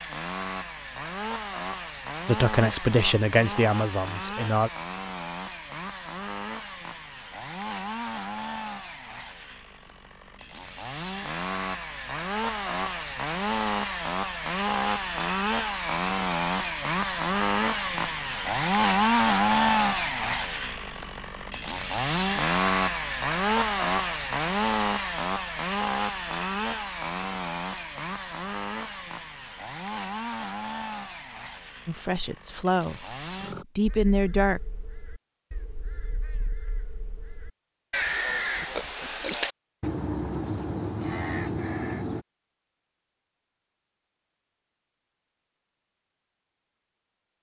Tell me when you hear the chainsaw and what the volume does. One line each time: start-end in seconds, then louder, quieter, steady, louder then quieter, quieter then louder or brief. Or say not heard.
0.0-33.6 louder then quieter.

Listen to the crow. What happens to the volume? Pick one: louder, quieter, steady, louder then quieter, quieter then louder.
louder.